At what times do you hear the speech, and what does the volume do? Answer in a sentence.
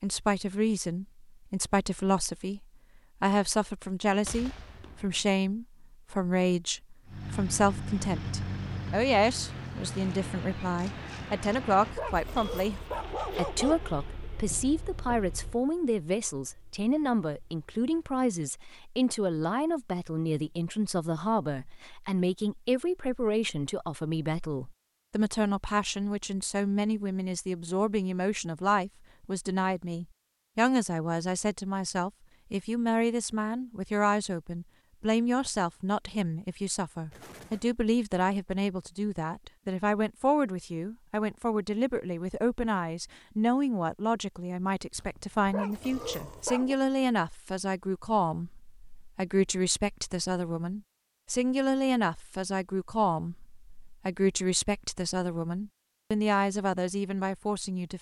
You can hear the speech from 0.0 to 57.9 s, at a steady volume.